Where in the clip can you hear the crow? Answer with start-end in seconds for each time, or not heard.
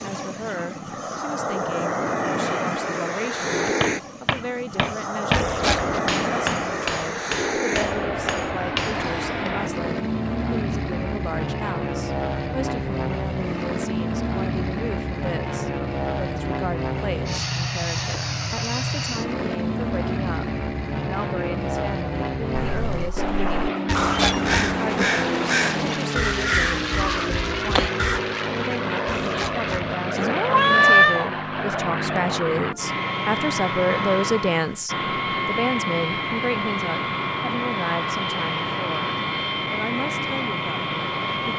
22.5-28.2.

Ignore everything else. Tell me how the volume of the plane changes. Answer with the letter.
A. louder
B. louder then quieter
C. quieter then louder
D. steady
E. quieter
D.